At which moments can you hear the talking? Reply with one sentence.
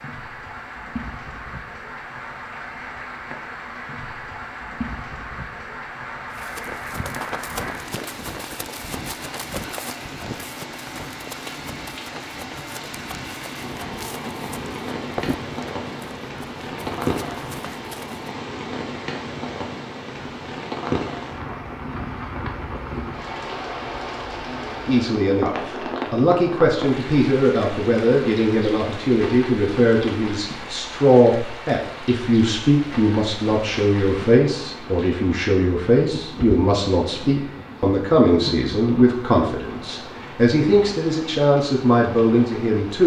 The talking can be heard from 24.9 to 43.0 s.